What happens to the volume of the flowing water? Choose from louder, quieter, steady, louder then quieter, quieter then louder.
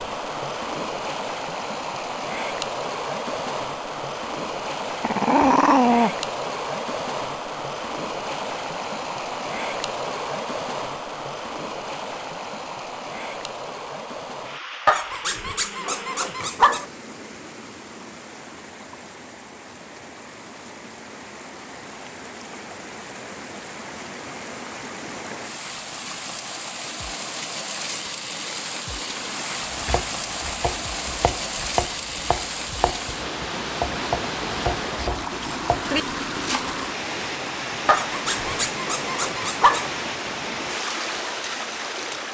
quieter then louder.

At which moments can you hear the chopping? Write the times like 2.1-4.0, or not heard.
29.6-36.7.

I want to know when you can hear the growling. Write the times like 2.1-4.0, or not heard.
5.0-6.1, 14.8-16.9, 37.9-39.9.